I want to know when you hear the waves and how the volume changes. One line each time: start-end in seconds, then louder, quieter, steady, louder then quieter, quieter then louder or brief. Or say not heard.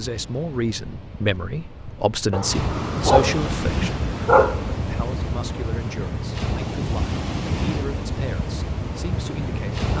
0.0-9.9 louder.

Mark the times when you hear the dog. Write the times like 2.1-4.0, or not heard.
2.3-4.8.